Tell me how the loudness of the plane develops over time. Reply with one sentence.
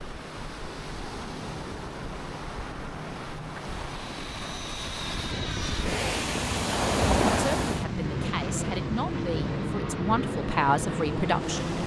The loudness of the plane goes up.